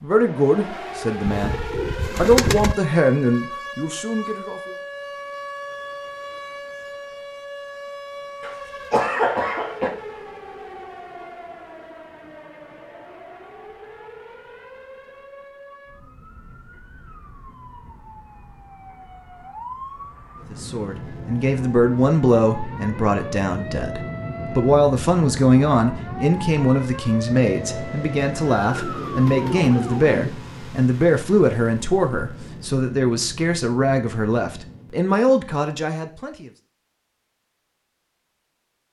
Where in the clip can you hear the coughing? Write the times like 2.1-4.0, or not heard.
8.4-9.9.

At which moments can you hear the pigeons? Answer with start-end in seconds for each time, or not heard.
1.2-2.8, 28.6-30.4.